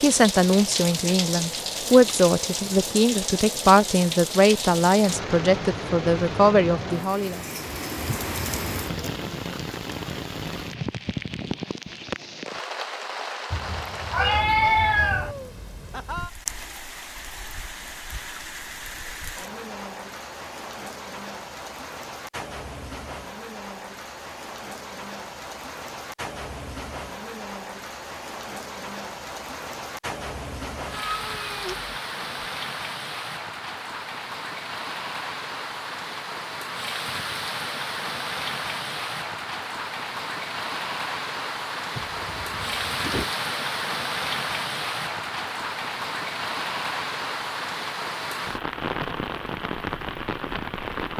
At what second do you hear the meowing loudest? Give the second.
15 s.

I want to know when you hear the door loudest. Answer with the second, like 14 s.
43 s.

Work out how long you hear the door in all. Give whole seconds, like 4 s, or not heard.
2 s.